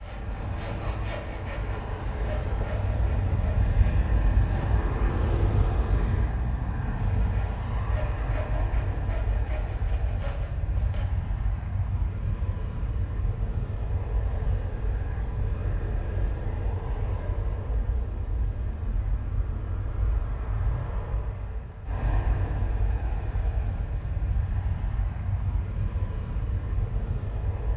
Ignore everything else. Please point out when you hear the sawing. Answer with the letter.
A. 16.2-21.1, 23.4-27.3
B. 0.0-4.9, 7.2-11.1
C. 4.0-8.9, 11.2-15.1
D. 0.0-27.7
B.